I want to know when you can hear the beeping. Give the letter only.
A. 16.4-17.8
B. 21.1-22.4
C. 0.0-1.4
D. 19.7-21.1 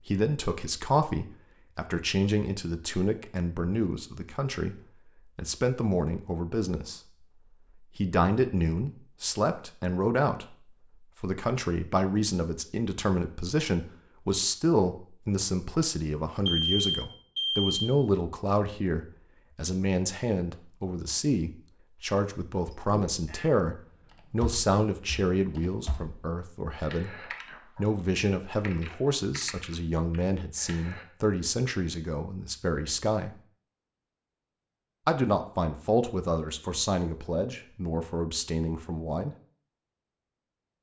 A.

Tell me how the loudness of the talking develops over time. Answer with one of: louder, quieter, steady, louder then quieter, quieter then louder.
steady.